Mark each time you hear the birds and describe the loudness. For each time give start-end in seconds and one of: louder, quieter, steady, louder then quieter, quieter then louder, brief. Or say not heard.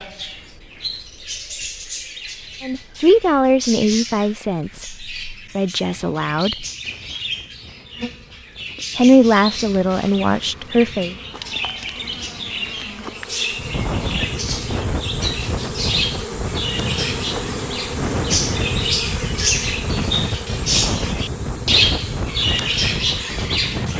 0.0-23.9 louder.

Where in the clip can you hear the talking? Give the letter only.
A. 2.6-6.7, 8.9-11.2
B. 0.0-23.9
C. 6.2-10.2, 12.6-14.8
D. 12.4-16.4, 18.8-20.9
A.